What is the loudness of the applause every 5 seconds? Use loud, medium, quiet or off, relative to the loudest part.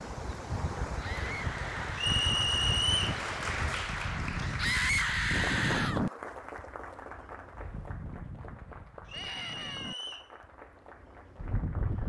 loud, medium, quiet.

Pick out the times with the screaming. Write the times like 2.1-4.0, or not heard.
1.0-2.2, 4.5-6.0, 9.1-10.1.